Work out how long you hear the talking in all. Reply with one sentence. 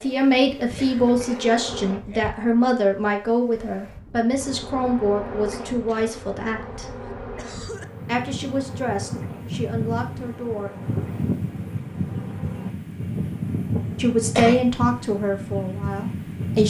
You can hear the talking for 12 seconds altogether.